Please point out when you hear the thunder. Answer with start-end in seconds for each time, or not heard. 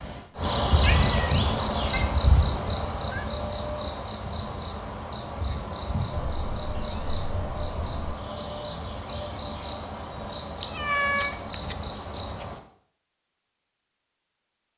not heard.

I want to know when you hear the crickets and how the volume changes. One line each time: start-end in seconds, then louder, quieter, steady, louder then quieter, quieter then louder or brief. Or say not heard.
0.0-12.6 quieter.